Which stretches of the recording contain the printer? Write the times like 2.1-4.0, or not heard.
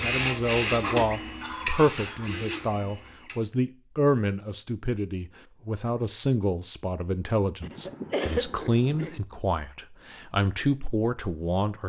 0.0-3.4.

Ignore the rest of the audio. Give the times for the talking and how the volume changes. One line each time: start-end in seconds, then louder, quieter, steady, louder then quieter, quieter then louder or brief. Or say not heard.
0.0-11.8 steady.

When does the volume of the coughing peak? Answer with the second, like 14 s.
8 s.